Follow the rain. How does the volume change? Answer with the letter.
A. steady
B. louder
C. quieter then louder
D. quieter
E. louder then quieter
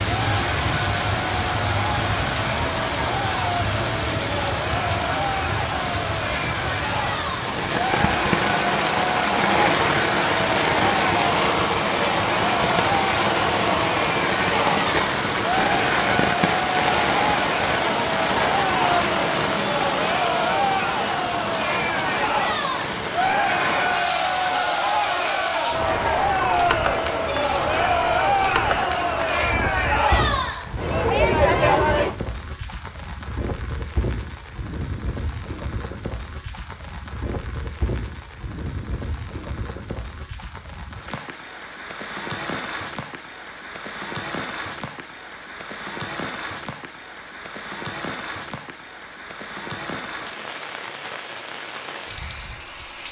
D.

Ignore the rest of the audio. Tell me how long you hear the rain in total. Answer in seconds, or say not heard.
53 s.